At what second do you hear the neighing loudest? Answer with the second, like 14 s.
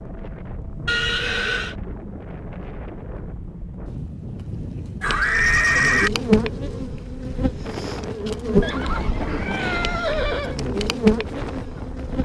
6 s.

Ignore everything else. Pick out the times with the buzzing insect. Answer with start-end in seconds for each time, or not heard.
5.0-12.1.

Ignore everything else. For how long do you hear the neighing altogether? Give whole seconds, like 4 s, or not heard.
4 s.